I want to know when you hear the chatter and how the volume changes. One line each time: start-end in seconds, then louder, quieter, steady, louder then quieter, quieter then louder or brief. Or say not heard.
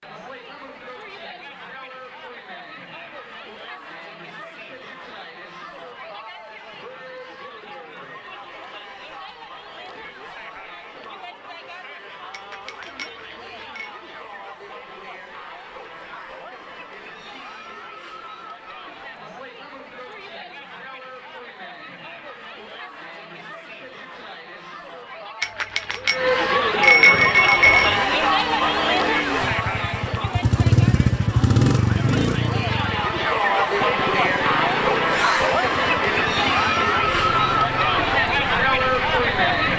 0.0-39.7 louder.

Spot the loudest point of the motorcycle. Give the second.
31 s.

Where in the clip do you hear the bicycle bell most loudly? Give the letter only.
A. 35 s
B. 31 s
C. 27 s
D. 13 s
C.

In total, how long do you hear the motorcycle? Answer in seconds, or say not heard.
12 s.